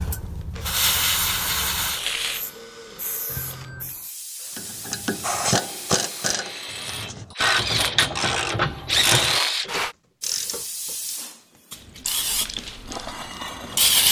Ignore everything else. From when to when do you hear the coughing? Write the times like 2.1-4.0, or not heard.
not heard.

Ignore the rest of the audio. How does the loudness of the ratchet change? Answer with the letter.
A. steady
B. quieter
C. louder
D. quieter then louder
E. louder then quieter
B.